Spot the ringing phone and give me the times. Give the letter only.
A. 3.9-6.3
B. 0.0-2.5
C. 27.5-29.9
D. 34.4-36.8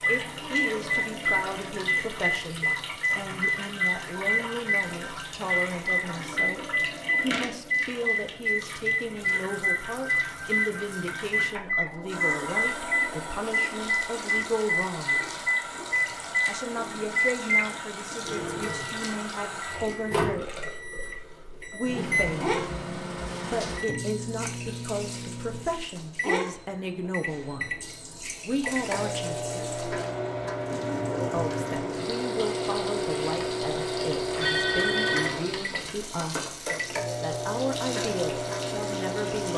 D.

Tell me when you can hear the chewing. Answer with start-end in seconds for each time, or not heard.
not heard.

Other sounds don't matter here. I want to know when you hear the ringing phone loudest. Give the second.
35 s.